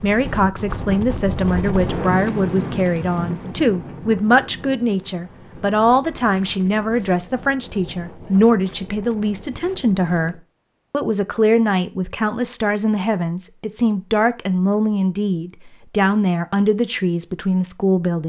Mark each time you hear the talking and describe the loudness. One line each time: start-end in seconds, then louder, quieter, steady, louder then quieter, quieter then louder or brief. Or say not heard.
0.0-18.2 steady.